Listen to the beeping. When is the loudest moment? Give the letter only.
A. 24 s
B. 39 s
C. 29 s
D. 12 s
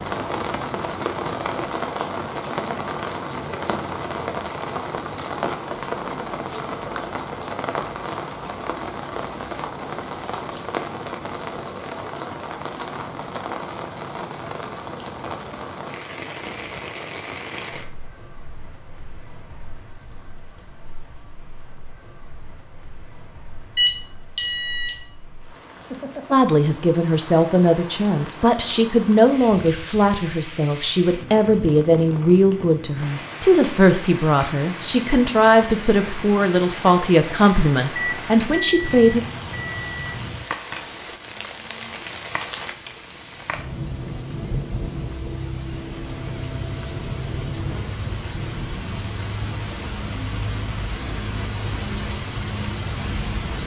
A.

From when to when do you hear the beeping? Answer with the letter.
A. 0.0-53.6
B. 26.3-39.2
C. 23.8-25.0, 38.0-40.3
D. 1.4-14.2
C.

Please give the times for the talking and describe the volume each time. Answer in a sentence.
The talking can be heard from 26.3 to 39.2 s, at a steady volume.